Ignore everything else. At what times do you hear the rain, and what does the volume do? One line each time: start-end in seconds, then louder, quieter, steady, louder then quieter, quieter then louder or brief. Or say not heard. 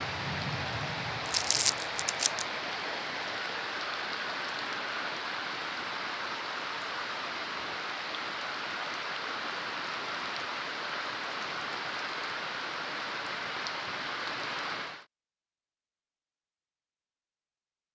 0.0-15.1 steady.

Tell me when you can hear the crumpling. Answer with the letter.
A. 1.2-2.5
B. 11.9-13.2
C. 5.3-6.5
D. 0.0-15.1
A.